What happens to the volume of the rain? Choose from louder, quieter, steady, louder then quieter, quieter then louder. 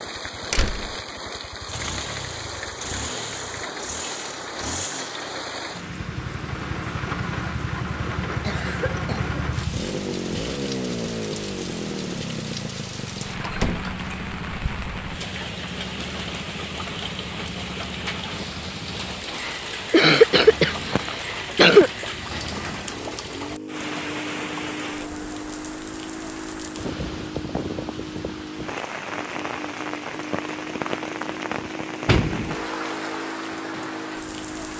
steady.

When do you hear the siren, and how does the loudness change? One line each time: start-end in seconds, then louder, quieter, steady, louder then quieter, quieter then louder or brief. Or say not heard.
not heard.